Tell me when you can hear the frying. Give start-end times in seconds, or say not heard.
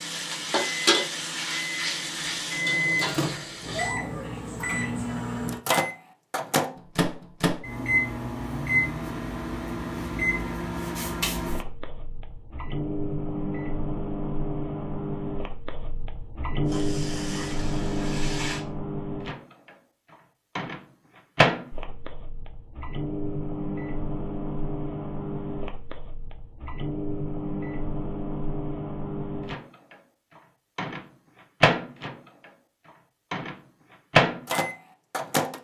0.0-4.0, 16.6-18.6.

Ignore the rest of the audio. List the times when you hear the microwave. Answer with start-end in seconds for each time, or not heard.
0.0-35.5.